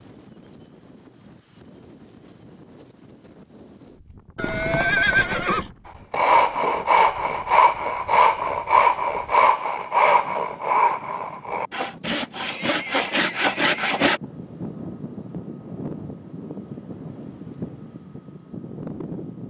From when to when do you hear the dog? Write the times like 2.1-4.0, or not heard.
not heard.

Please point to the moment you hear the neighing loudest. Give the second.
5 s.